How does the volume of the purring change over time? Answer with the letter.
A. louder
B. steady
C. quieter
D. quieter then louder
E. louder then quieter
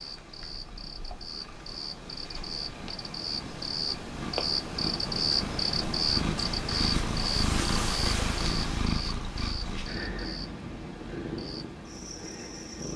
E.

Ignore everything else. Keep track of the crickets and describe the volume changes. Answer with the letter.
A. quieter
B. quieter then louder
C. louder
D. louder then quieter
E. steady
D.